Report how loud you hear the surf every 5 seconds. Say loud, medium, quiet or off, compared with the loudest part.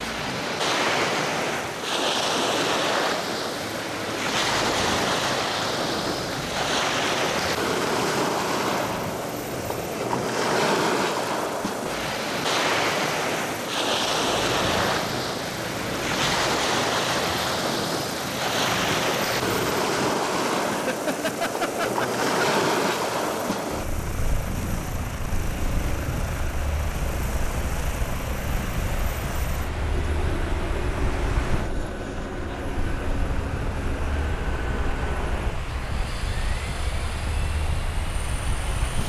loud, loud, loud, loud, loud, medium, medium, medium.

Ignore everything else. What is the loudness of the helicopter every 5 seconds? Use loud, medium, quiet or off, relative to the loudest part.
loud, loud, loud, loud, loud, loud, loud, medium.